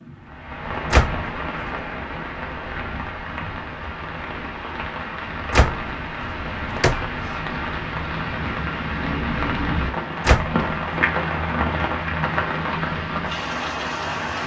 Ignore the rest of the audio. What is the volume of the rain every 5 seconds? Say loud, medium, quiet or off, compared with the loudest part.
medium, loud, loud.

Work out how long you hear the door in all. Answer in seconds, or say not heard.
3 s.